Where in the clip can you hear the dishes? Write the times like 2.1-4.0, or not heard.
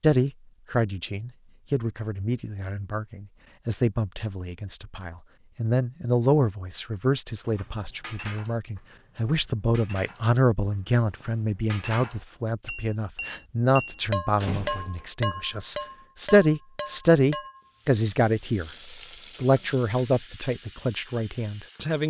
7.5-17.6.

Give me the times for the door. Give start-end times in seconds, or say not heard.
14.4-15.1.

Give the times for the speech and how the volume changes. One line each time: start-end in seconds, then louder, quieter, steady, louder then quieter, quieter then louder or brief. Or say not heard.
0.0-18.7 louder
19.4-22.0 brief.